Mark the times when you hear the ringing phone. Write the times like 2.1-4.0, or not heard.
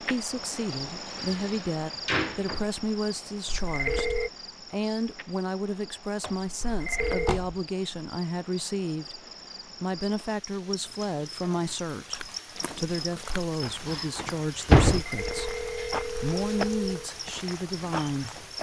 3.5-4.3, 6.6-7.4, 15.0-17.1.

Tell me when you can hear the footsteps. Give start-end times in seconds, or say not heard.
12.0-18.5.